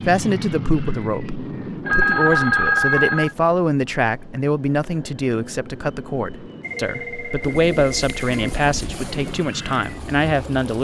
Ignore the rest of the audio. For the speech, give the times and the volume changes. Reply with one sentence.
You can hear the speech from 0.0 to 10.7 s, at a steady volume.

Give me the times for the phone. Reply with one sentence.
You can hear the phone from 1.9 to 3.4 s and from 6.6 to 8.3 s.